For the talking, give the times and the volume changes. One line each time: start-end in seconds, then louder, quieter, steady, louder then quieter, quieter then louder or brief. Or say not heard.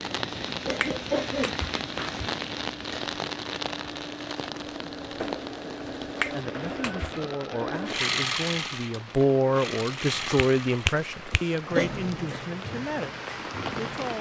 6.2-14.1 louder then quieter.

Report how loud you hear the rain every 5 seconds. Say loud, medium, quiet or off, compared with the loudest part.
loud, medium, loud.